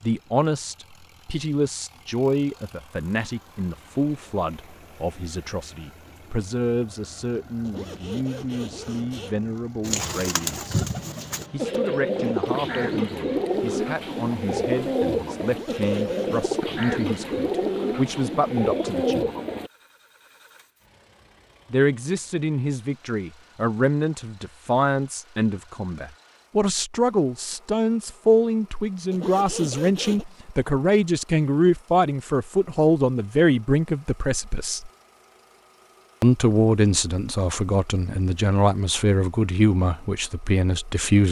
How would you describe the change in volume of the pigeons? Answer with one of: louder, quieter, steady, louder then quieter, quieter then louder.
steady.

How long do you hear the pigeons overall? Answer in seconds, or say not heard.
10 s.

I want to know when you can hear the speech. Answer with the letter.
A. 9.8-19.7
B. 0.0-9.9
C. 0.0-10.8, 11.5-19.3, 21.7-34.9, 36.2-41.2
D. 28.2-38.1
C.